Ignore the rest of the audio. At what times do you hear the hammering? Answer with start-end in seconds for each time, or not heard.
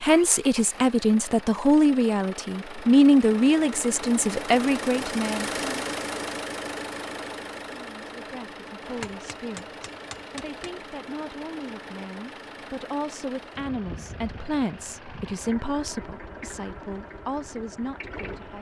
8.8-10.8.